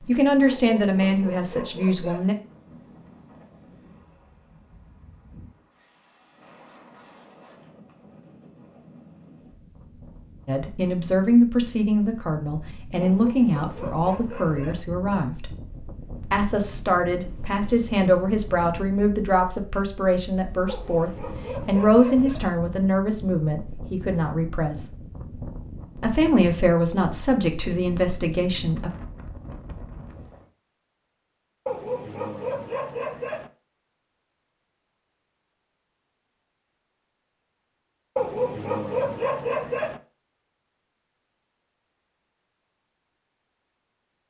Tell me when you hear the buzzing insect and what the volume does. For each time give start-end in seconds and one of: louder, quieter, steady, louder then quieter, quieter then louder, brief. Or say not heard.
not heard.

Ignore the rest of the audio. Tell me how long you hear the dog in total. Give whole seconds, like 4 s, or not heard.
9 s.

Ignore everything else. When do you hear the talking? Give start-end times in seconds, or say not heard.
0.1-2.4, 10.4-15.5, 16.2-24.9, 25.9-28.9.